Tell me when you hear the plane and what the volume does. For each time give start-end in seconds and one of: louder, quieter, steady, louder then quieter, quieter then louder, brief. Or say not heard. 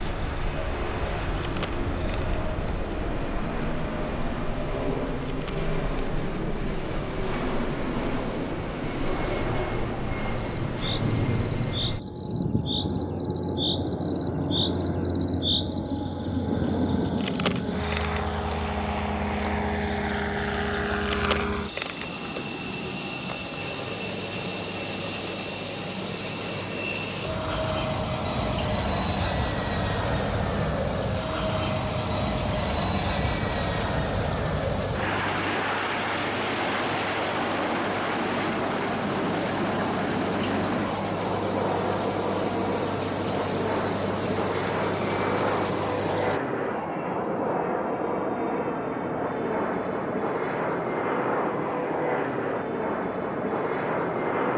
0.0-54.5 steady.